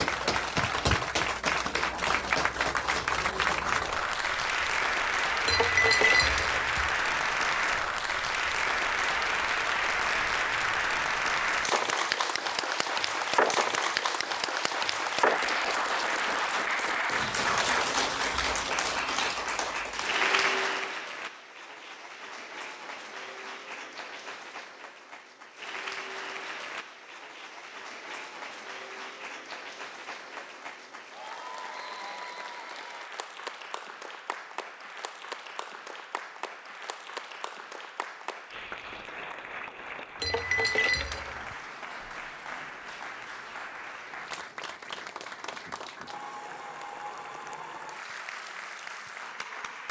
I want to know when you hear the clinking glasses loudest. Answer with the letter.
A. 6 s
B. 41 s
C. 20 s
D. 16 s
A.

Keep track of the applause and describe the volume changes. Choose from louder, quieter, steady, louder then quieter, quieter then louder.
quieter.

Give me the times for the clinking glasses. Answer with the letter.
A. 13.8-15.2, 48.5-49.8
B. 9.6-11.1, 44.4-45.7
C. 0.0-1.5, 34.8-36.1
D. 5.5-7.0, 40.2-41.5
D.